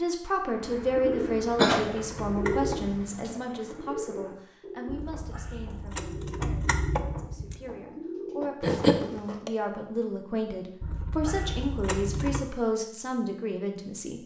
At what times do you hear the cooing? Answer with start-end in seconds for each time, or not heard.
0.6-9.2.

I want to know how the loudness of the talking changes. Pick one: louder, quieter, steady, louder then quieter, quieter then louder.
quieter then louder.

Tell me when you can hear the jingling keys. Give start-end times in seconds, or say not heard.
0.7-3.1, 4.8-7.6, 10.8-12.4.